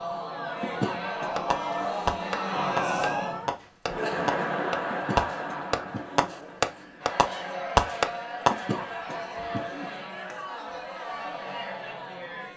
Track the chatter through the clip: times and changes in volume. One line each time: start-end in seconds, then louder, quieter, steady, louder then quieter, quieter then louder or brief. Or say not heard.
0.0-12.5 quieter.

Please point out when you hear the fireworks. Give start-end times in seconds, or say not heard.
1.4-8.5.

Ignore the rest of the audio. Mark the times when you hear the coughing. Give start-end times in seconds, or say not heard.
0.6-1.4, 4.8-6.3, 8.4-10.4.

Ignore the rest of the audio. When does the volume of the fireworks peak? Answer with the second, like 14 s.
8 s.